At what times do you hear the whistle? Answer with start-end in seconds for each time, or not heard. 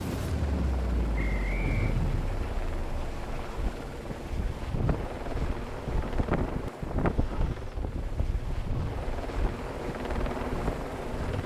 1.1-1.9.